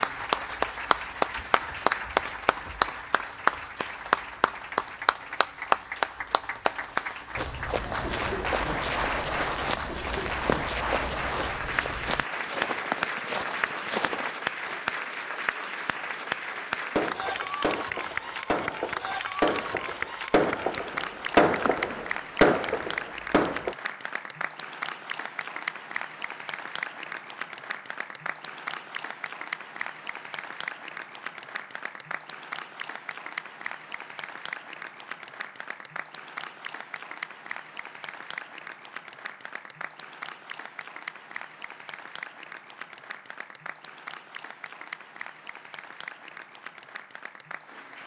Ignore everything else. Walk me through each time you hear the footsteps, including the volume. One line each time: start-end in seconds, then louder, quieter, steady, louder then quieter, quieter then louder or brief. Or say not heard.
7.3-14.8 steady.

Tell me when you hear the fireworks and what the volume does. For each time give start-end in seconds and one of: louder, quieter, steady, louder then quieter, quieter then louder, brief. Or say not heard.
16.9-23.8 louder.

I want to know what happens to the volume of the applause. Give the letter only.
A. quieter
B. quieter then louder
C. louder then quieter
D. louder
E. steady
A.